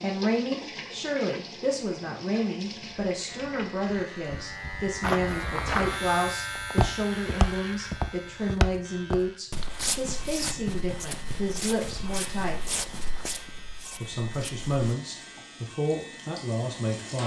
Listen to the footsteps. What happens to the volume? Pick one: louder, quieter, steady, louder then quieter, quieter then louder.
quieter.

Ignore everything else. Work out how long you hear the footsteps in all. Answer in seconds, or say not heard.
10 s.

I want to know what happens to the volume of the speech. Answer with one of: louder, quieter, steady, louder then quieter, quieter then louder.
steady.